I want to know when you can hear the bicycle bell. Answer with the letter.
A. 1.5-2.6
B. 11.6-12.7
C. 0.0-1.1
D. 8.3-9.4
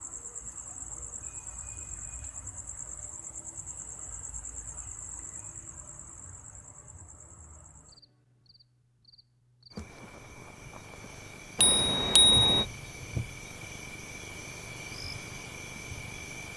B.